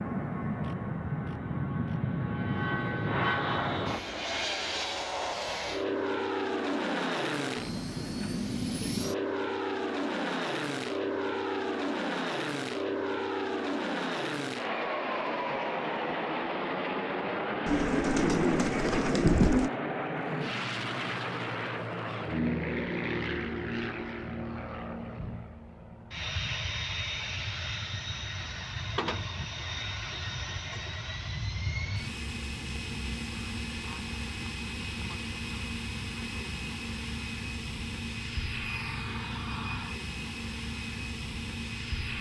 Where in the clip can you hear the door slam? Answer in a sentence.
The door slam can't be heard in this clip.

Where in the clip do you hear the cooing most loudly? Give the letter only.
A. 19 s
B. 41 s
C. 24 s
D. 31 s
A.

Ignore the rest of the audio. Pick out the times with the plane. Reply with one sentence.
The plane can be heard from 0.0 to 42.1 s.